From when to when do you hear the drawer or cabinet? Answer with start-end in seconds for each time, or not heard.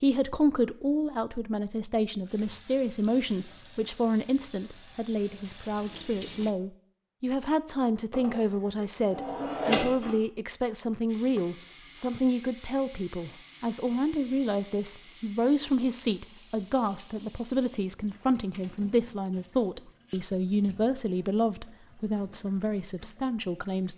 8.1-10.2.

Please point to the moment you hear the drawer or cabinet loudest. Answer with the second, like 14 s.
10 s.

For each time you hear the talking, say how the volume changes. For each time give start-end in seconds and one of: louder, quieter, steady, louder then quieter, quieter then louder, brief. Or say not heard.
0.0-23.9 steady.